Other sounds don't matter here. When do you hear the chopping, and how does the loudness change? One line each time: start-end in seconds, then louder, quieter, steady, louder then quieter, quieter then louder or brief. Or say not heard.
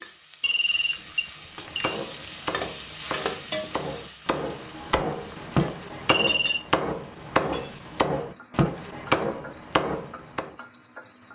1.6-10.5 louder.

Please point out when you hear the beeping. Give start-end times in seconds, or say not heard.
0.4-2.0, 6.0-6.7.